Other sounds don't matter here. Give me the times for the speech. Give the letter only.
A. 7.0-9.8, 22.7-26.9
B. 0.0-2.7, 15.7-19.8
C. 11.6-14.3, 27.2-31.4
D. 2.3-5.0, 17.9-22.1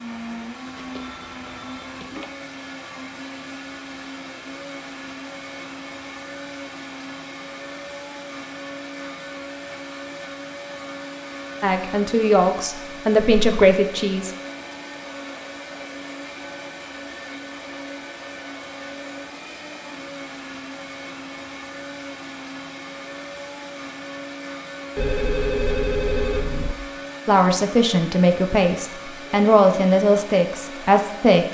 C.